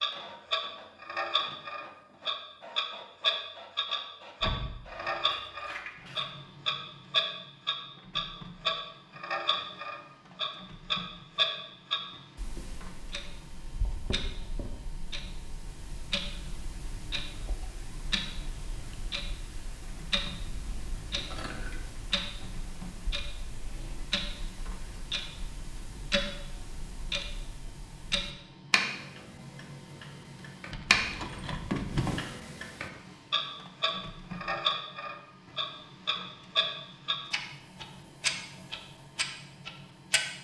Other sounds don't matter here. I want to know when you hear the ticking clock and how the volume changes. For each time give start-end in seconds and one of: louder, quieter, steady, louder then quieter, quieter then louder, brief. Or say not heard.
0.0-40.2 quieter then louder.